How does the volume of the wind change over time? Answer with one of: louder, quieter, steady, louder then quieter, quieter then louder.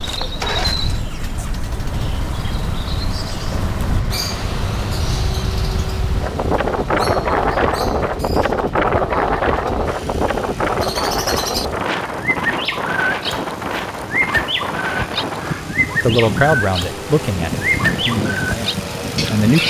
louder then quieter.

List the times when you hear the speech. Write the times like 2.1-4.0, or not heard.
16.0-19.6.